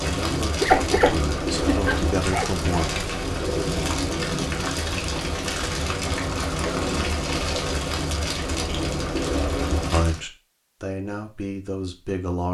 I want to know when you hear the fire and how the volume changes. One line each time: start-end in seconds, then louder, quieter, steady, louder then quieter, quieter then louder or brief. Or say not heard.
0.0-10.2 steady.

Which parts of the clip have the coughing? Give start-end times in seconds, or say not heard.
not heard.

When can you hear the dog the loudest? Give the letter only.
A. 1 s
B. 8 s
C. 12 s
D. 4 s
A.